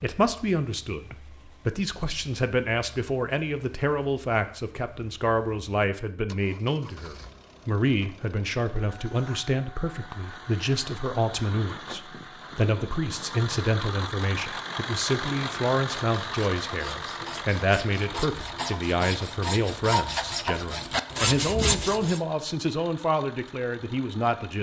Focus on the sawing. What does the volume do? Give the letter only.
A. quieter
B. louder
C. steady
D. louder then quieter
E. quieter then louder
B.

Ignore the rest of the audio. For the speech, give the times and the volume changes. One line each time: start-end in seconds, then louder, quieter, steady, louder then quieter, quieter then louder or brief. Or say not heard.
0.0-24.5 steady.